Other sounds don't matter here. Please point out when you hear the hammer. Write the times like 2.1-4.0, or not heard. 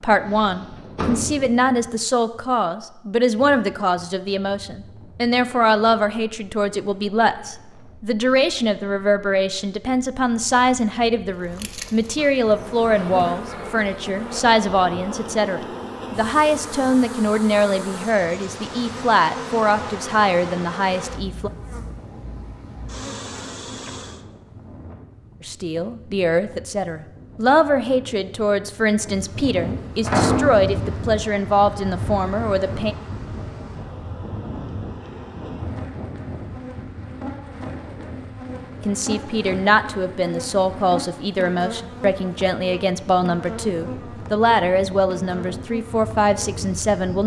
not heard.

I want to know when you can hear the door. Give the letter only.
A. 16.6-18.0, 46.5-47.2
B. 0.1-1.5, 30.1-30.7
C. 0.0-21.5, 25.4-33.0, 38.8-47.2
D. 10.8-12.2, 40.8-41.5
B.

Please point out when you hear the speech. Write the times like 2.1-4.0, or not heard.
0.0-21.5, 25.4-33.0, 38.8-47.2.